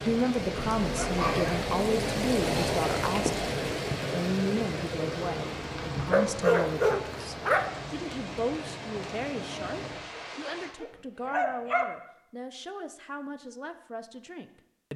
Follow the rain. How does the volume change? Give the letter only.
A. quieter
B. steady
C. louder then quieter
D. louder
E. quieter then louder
A.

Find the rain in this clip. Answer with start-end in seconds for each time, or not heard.
0.0-10.8.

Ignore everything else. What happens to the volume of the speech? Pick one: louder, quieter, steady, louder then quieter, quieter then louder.
quieter.